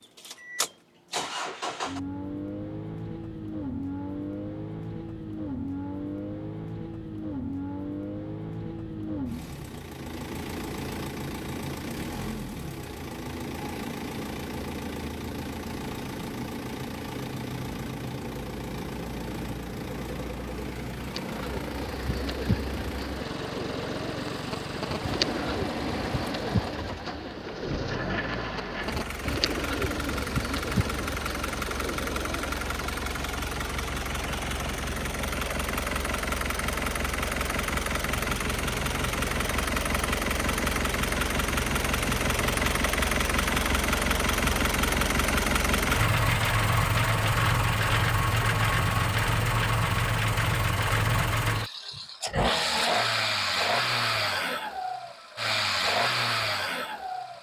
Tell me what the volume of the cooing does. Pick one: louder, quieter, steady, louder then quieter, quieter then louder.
steady.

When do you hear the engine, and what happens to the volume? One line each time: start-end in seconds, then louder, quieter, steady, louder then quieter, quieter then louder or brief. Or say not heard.
0.0-57.3 louder.